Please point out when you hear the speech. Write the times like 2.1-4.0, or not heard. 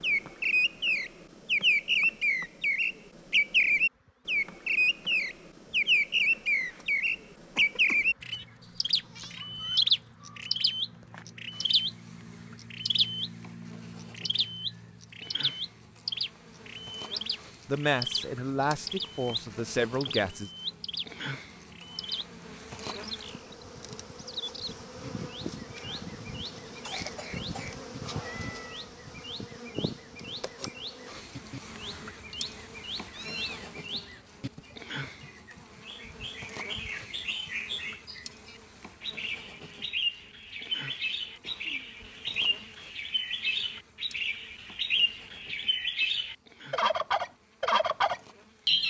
17.6-20.5.